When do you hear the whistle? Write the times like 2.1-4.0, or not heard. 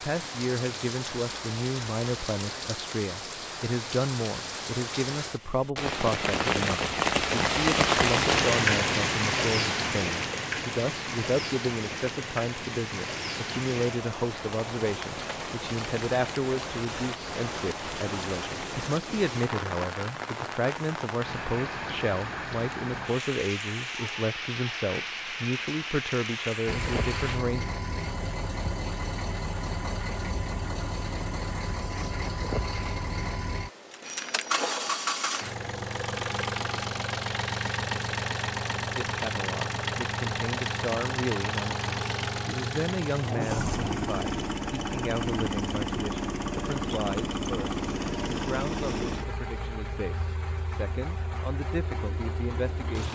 not heard.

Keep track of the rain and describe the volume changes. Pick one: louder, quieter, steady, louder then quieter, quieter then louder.
louder then quieter.